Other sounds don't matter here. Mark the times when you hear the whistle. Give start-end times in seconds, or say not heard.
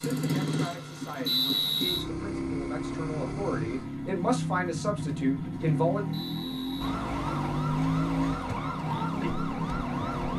1.2-2.0, 6.1-6.9.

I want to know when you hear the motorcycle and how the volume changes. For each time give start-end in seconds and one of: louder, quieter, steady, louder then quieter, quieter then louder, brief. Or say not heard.
0.0-10.3 steady.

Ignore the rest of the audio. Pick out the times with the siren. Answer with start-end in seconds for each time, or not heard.
6.8-10.3.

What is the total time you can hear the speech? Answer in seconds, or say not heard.
6 s.